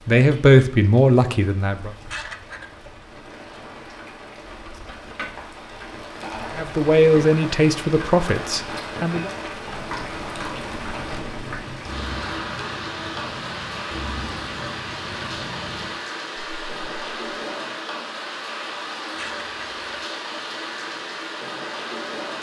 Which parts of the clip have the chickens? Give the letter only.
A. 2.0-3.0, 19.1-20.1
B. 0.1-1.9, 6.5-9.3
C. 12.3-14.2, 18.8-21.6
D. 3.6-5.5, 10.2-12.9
A.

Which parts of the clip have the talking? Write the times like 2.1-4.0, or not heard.
0.1-1.9, 6.5-9.3.